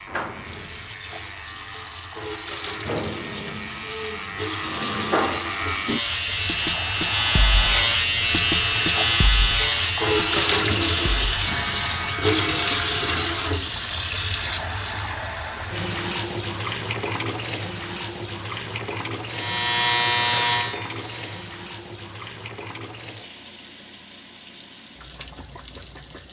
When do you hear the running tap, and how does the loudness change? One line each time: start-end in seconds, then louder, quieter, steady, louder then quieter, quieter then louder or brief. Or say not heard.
0.0-26.2 louder then quieter.